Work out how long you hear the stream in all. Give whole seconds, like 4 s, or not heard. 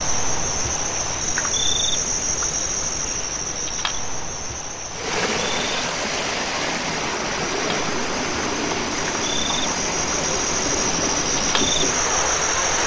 8 s.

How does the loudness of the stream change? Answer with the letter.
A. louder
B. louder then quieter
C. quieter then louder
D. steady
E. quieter
D.